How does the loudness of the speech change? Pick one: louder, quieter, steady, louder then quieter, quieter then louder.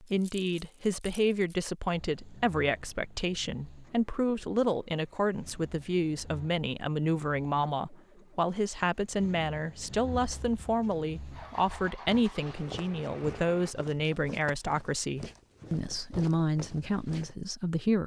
steady.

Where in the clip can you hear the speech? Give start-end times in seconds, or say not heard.
0.0-18.0.